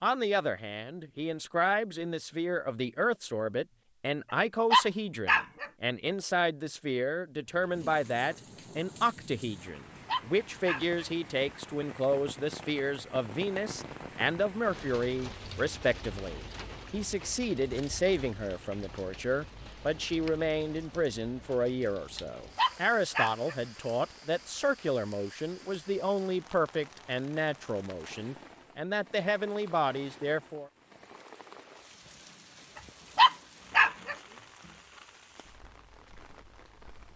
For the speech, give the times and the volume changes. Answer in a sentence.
The speech can be heard from 0.0 to 30.7 s, at a steady volume.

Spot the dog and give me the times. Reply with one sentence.
The dog can be heard from 4.7 to 5.7 s, from 10.1 to 11.1 s, from 22.6 to 23.6 s and from 33.1 to 34.1 s.